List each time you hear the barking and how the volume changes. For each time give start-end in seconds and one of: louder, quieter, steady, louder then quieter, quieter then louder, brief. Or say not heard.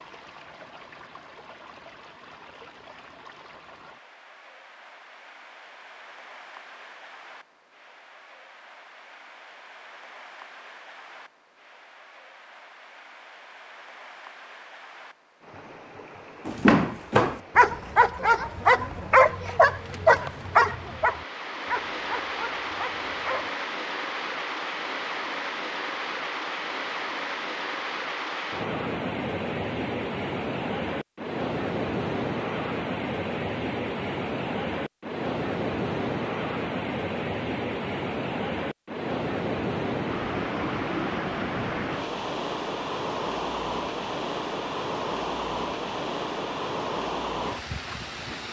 16.4-23.5 quieter.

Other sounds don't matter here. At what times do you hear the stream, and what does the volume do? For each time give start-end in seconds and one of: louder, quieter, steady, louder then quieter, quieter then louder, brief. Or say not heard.
0.0-48.4 louder.